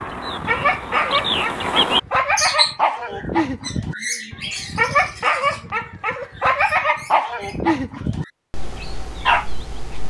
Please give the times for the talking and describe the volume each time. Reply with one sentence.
You can't hear the talking here.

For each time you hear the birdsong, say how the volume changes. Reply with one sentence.
The birdsong can be heard from 0.0 to 9.8 s, getting quieter.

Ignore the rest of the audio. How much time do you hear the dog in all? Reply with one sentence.
You can hear the dog for 10 seconds altogether.